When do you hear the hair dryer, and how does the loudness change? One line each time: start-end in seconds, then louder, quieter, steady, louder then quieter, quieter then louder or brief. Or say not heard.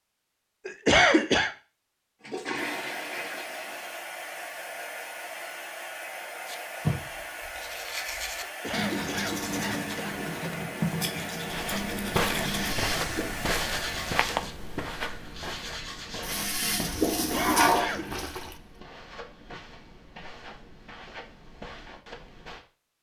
2.5-14.2 steady.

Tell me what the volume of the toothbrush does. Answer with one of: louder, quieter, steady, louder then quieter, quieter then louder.
quieter.